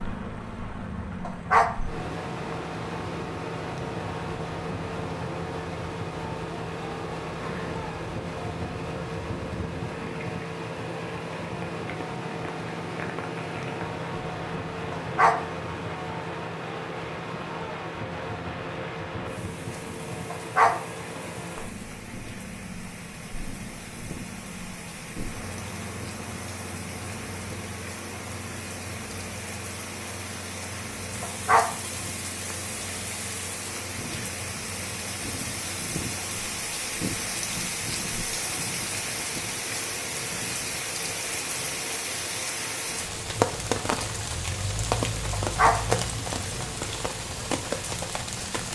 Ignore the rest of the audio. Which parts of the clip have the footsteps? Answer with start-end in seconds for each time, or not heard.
not heard.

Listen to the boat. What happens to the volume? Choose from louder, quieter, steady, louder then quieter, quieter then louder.
quieter.